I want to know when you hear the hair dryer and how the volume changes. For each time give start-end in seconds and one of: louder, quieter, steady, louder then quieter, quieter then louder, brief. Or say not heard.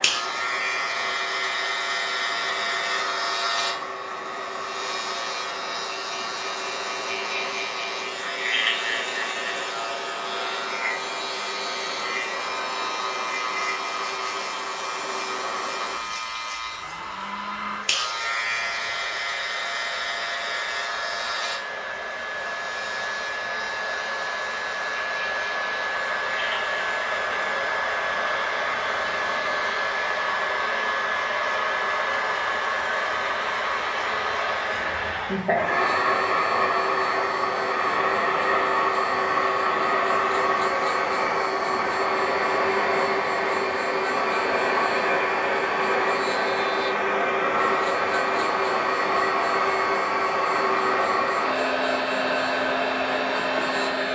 0.0-54.1 louder.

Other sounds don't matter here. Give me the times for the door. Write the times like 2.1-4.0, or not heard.
not heard.